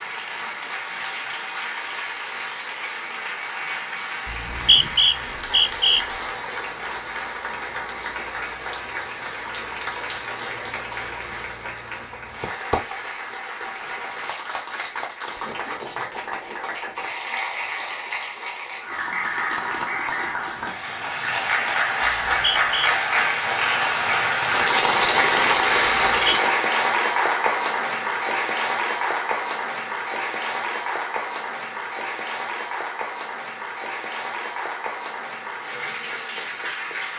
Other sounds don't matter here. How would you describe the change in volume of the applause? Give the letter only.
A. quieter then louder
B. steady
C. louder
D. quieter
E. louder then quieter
E.